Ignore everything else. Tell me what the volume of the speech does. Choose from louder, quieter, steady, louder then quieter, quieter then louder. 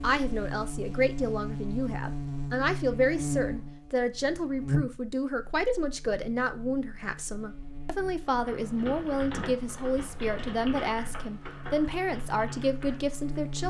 steady.